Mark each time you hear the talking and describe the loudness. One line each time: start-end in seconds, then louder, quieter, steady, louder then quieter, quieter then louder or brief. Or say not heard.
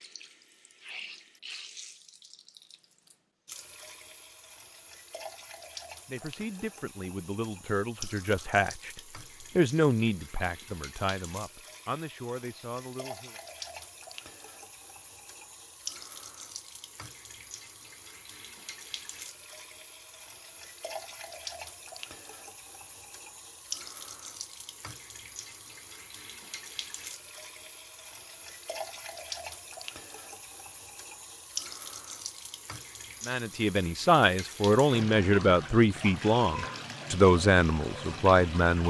6.0-13.4 louder then quieter
33.2-38.8 steady.